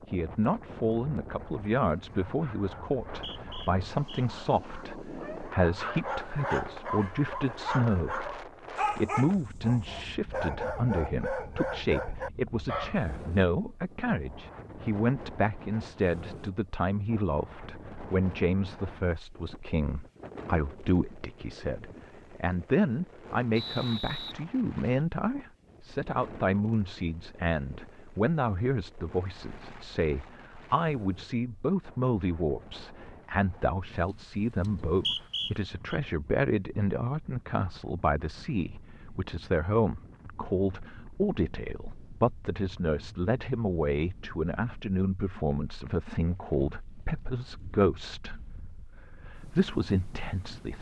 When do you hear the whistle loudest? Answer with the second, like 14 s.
35 s.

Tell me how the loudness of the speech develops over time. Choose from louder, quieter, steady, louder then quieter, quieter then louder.
steady.